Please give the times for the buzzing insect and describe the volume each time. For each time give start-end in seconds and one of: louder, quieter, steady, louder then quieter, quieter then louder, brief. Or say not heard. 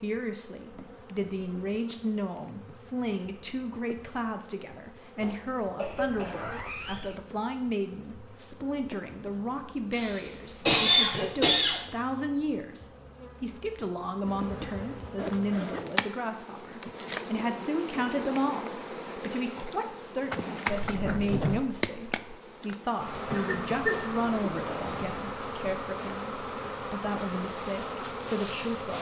0.0-28.9 louder.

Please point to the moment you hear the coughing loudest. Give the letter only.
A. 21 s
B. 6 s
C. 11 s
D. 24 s
C.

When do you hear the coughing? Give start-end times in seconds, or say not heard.
5.2-6.4, 9.9-11.8, 23.3-25.1.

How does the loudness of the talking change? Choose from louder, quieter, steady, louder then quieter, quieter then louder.
steady.